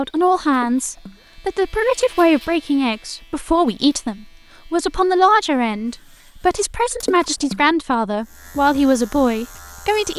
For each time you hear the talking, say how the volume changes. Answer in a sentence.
You can hear the talking from 0.0 to 10.1 s, at a steady volume.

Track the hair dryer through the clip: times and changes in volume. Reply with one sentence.
The hair dryer can't be heard in this clip.